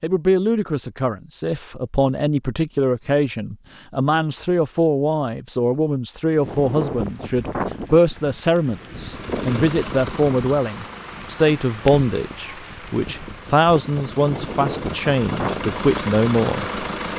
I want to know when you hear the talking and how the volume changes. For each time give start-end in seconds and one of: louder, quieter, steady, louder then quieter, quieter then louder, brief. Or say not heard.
0.0-16.8 steady.